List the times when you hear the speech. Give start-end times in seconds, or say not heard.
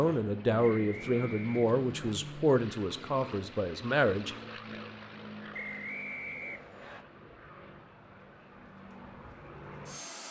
0.0-4.3.